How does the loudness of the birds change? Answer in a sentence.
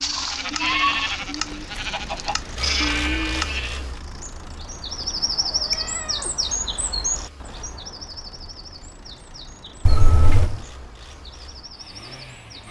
The volume of the birds goes down.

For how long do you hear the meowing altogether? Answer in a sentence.
The meowing can be heard for 3 seconds in total.